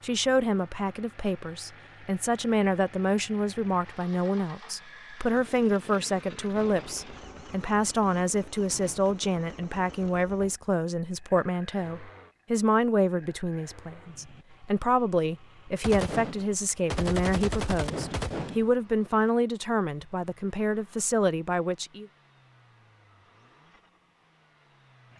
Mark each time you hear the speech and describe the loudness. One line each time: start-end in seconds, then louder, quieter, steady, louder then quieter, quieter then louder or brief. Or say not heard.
0.0-22.1 steady.